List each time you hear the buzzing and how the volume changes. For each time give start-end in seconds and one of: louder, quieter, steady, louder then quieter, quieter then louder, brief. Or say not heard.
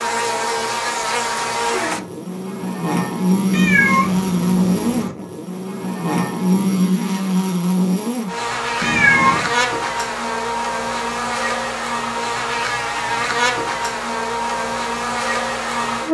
0.0-16.0 steady.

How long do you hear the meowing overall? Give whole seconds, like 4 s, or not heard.
2 s.